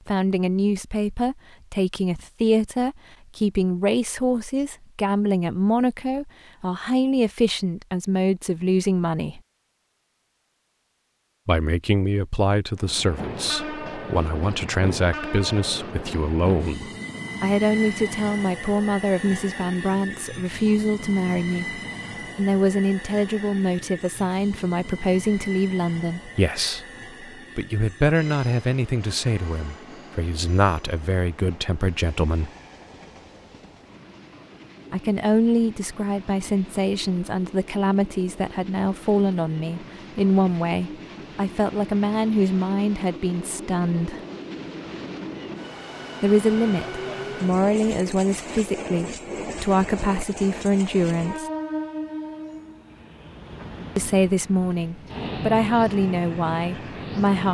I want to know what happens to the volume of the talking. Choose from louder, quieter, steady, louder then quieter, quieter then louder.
steady.